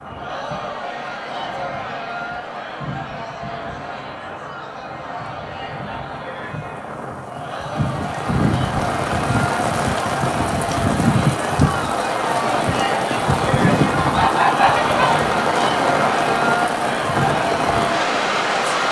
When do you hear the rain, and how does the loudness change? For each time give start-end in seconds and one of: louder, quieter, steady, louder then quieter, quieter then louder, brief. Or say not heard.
0.0-18.8 louder.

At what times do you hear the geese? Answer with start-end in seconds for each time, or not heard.
13.7-15.3.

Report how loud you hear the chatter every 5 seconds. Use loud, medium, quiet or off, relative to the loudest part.
medium, medium, loud, loud.